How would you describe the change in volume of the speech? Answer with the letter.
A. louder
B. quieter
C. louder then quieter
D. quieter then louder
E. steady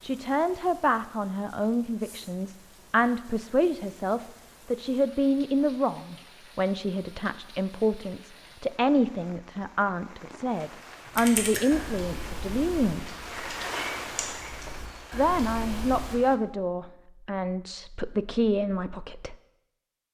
E.